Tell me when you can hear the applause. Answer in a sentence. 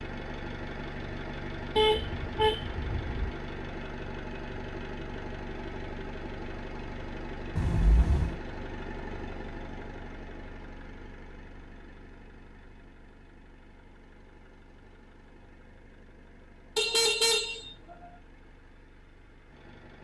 You can't hear the applause here.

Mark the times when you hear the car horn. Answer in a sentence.
You can hear the car horn from 1.8 to 3.3 s, from 7.5 to 8.3 s and from 16.8 to 18.1 s.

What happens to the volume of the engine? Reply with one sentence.
The loudness of the engine goes down.